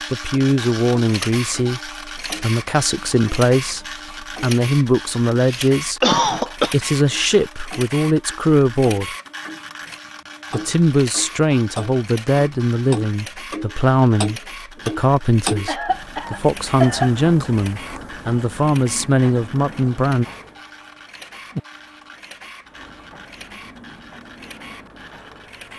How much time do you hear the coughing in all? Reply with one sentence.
You can hear the coughing for 3 seconds altogether.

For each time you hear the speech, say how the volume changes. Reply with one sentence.
You can hear the speech from 0.1 to 9.2 s, at a steady volume; and from 10.5 to 20.2 s, at a steady volume.